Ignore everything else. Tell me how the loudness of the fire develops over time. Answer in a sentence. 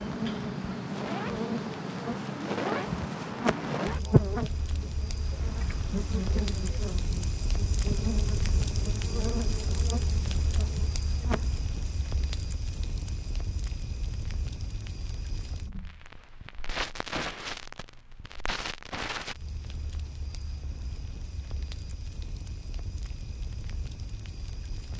The loudness of the fire goes down.